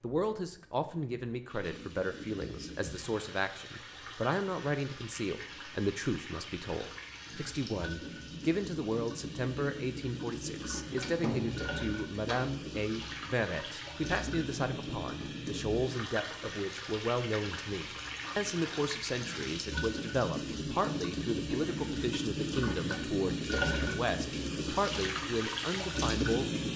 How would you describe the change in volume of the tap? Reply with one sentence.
The volume of the tap goes up.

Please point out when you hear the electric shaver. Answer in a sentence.
You can't hear the electric shaver here.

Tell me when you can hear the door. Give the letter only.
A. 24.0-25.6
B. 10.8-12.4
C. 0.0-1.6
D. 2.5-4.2
B.